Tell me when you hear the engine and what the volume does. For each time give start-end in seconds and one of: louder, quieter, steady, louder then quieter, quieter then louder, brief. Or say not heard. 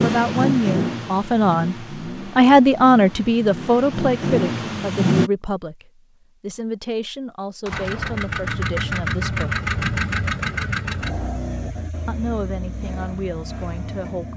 0.0-5.3 quieter then louder
7.7-14.3 quieter.